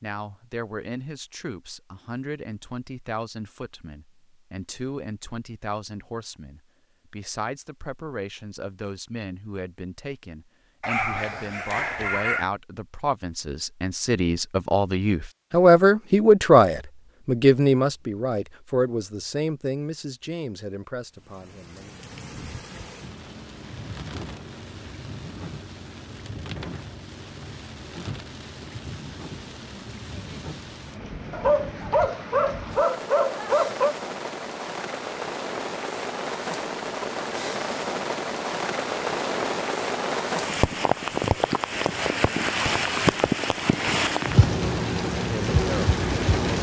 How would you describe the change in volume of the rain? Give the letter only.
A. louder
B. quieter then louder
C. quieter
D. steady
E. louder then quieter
A.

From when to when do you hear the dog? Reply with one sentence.
You can hear the dog from 10.8 to 12.5 s and from 31.3 to 34.0 s.